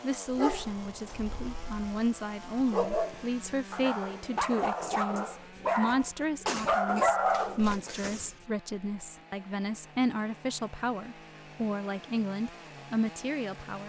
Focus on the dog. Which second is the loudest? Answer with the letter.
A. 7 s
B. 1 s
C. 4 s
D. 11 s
A.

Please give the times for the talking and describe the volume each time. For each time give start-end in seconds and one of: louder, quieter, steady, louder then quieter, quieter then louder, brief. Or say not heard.
0.0-13.8 steady.